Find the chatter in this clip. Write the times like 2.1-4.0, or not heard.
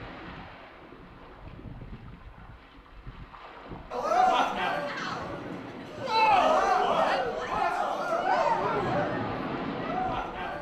3.9-10.5.